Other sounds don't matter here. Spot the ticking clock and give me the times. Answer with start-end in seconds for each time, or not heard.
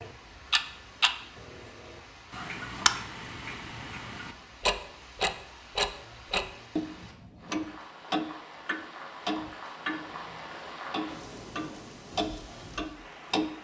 0.0-13.5.